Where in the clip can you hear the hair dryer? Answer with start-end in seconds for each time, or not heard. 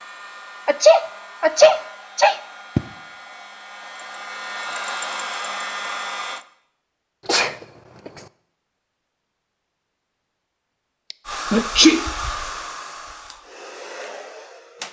0.0-6.5, 11.2-14.8.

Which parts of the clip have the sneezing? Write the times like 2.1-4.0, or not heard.
0.7-2.8, 7.2-8.2, 11.1-12.1.